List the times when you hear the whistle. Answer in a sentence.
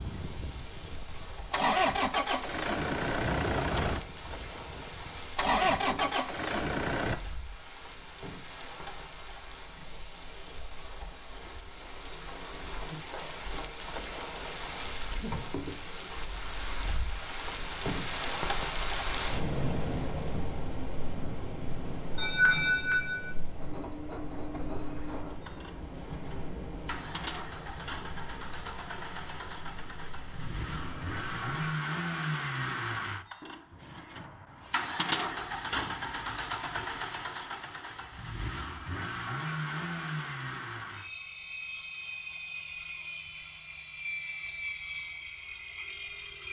The whistle can't be heard in this clip.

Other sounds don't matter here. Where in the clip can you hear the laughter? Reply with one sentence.
You can hear the laughter from 22.1 to 23.4 s.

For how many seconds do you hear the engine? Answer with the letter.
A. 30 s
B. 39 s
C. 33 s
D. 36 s
A.